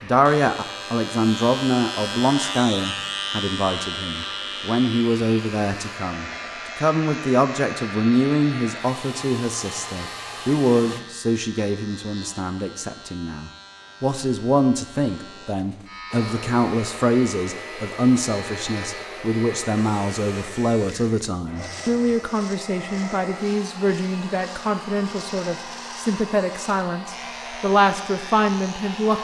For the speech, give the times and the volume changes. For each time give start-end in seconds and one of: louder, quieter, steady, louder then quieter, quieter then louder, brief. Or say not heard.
0.0-29.1 steady.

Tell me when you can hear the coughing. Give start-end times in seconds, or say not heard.
not heard.